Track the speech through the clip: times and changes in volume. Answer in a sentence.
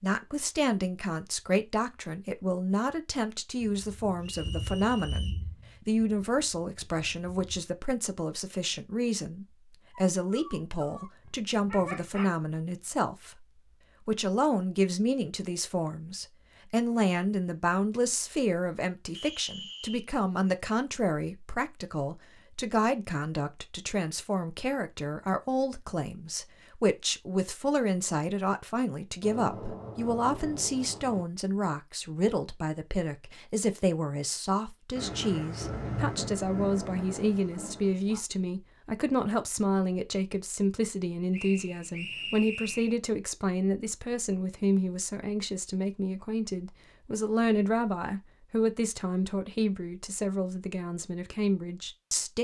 You can hear the speech from 0.0 to 52.3 s, at a steady volume.